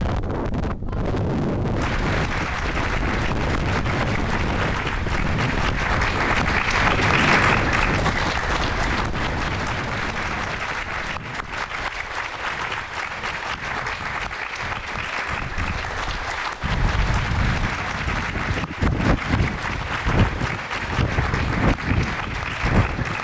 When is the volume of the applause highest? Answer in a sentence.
The volume of the applause peaks at 7 seconds.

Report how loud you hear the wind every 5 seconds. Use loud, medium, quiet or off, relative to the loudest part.
loud, loud, quiet, loud, loud.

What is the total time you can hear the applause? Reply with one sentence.
The applause can be heard for 21 seconds in total.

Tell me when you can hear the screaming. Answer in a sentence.
The screaming can't be heard in this clip.